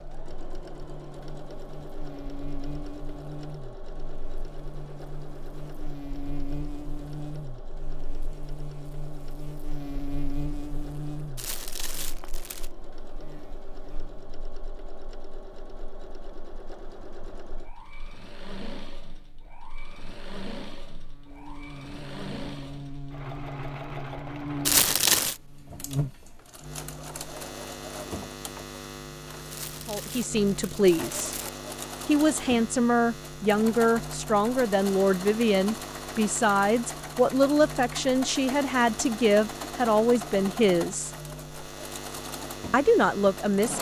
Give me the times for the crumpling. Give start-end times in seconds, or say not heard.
11.3-12.7, 24.6-25.4, 29.5-31.5.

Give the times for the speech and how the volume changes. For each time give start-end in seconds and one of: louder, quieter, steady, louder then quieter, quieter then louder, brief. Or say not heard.
29.9-31.4 brief
32.0-41.1 steady
42.7-43.7 brief.